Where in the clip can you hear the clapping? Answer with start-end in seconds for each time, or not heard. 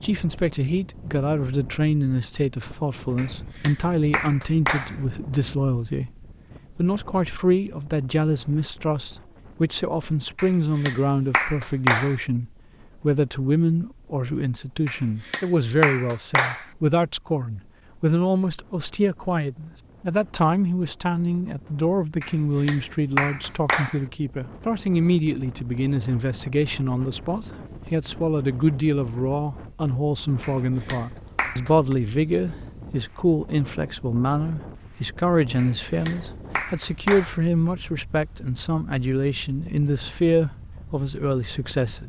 3.1-5.0, 10.3-12.2, 14.8-16.6, 22.2-24.0, 30.4-31.9, 35.5-37.4.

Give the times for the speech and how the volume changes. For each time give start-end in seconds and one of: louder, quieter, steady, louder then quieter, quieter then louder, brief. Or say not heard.
0.0-42.0 steady.